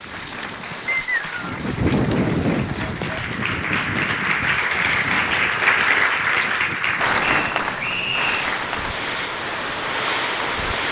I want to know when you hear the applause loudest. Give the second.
6 s.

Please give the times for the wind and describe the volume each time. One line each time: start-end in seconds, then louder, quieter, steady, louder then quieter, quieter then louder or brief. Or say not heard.
0.0-10.8 quieter then louder.